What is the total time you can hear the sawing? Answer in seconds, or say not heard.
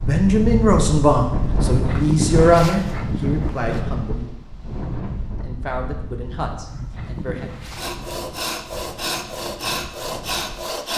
3 s.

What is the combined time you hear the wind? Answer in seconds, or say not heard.
11 s.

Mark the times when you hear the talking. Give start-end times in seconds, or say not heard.
0.0-4.3, 5.4-7.5.